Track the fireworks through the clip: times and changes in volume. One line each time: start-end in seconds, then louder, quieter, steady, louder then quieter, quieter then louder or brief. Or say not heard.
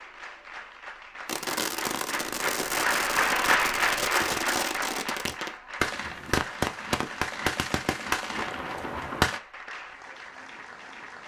1.2-9.4 steady.